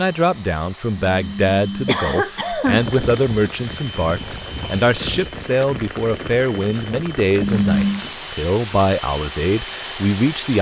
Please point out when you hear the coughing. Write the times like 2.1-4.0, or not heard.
1.1-2.9, 7.3-8.1.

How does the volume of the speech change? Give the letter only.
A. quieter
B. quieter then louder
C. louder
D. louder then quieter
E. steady
E.